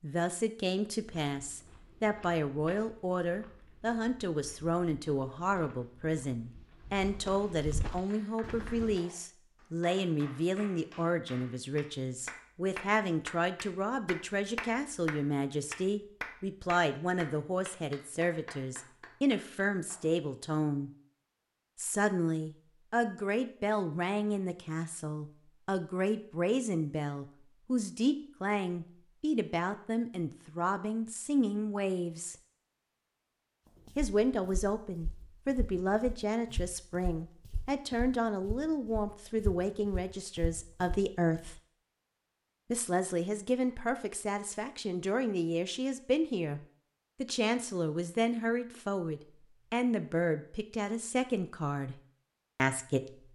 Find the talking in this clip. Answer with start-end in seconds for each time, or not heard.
0.0-20.9, 21.8-32.4, 34.0-41.6, 42.7-46.6, 47.2-53.0.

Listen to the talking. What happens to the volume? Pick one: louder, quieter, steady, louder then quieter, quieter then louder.
steady.